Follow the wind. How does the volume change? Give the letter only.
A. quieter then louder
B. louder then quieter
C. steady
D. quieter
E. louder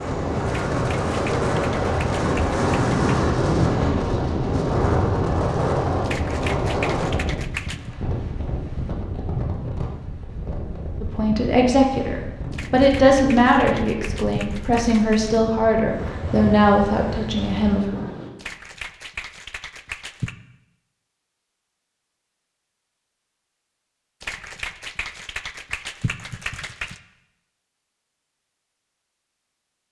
D.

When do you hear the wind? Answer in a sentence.
You can hear the wind from 0.0 to 18.3 s.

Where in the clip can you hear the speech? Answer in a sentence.
The speech can be heard from 11.0 to 17.9 s.